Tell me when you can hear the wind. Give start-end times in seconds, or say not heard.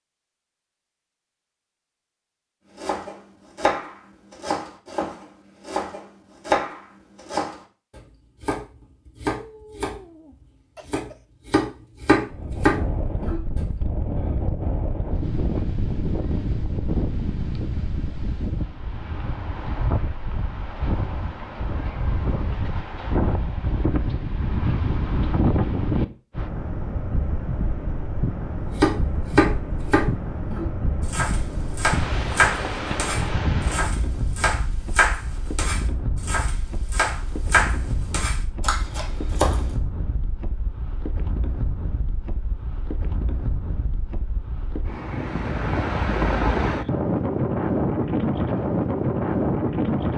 12.2-50.1.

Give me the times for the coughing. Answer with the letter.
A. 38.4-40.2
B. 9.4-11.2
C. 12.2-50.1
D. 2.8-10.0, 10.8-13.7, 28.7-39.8
B.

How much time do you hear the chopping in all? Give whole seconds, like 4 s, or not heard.
21 s.